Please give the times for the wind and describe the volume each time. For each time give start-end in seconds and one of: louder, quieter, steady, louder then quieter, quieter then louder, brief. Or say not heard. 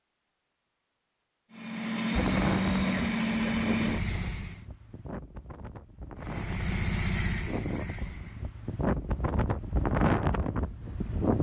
2.1-11.3 quieter then louder.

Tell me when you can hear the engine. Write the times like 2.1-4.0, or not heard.
1.5-4.7, 6.2-8.5.